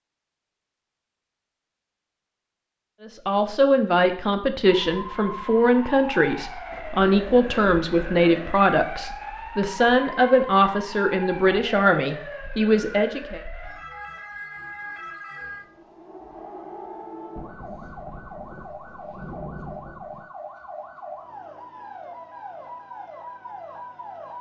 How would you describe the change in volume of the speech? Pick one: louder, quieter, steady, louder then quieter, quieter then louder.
steady.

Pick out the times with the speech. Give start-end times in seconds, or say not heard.
3.0-13.4.